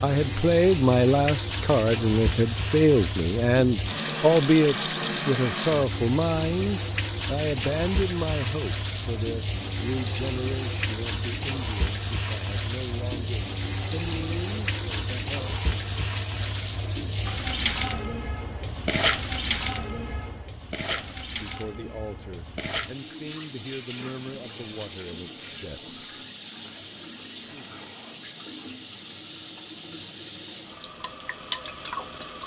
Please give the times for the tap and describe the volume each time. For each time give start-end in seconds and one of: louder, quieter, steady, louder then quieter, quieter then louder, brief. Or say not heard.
0.0-32.4 quieter.